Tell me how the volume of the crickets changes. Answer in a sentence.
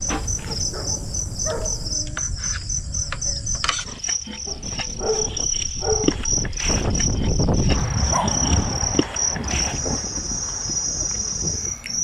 The loudness of the crickets stays about the same.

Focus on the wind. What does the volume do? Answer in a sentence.
The volume of the wind goes up, then down.